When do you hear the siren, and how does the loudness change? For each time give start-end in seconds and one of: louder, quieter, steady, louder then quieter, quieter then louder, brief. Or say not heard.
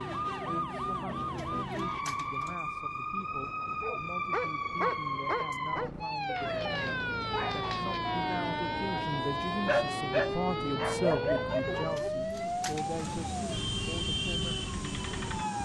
0.0-15.5 steady.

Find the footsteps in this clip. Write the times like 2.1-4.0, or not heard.
not heard.